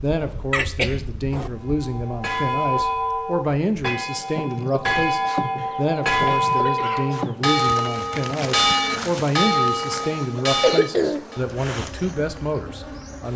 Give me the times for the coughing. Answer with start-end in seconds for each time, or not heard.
0.5-1.5, 5.5-7.2, 9.9-11.2.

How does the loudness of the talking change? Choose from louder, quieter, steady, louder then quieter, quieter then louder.
steady.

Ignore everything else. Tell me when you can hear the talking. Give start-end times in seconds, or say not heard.
0.0-13.3.